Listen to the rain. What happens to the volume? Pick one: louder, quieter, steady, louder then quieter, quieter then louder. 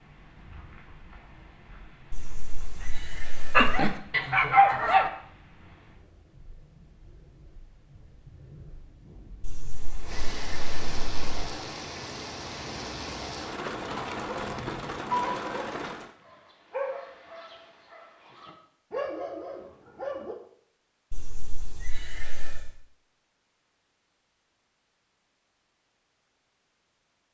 louder.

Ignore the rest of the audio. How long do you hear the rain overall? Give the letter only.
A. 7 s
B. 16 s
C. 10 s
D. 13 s
B.